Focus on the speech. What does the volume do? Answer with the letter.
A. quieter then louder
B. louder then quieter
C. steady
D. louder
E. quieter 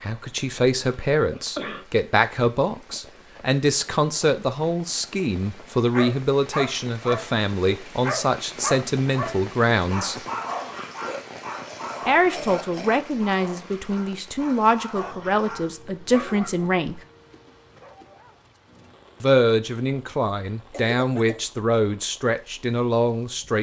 C.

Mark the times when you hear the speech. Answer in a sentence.
The speech can be heard from 0.0 to 10.2 s, from 12.1 to 17.0 s and from 19.2 to 23.5 s.